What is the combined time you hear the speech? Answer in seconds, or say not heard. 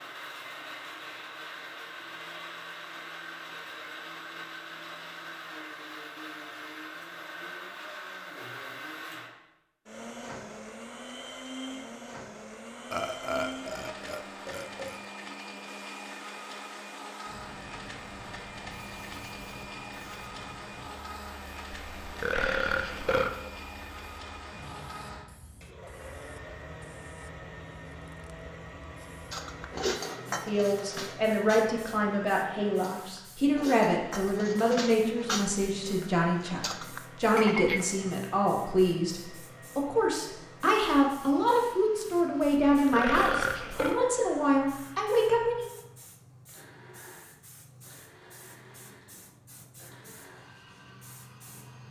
15 s.